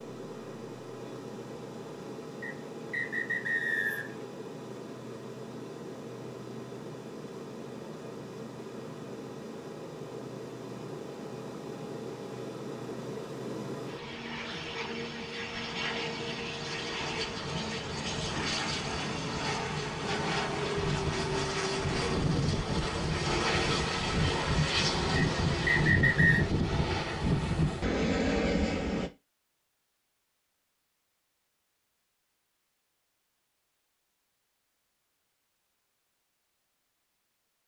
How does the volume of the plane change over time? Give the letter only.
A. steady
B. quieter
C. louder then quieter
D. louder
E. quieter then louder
D.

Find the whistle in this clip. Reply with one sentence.
You can hear the whistle from 2.4 to 4.2 s and from 25.1 to 26.4 s.